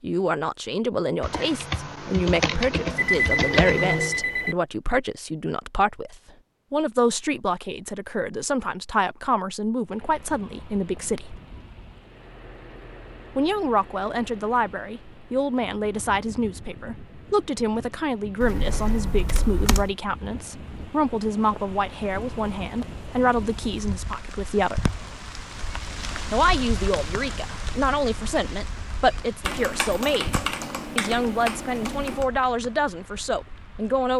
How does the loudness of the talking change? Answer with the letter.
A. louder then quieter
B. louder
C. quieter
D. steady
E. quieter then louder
D.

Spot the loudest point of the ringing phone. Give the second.
3 s.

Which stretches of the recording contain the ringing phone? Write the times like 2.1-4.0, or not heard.
3.0-4.5.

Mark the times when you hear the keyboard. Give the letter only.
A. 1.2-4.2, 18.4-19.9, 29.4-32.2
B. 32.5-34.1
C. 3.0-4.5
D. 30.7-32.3
A.